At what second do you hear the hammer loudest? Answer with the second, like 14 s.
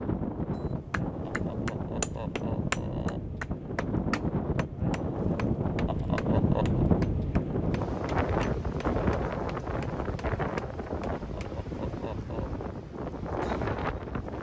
3 s.